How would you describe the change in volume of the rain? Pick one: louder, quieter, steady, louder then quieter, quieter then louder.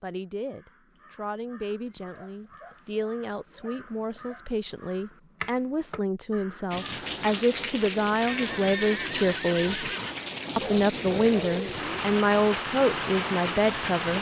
steady.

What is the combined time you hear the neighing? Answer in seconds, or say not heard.
2 s.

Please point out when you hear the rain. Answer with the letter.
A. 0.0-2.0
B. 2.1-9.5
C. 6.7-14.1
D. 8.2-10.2
C.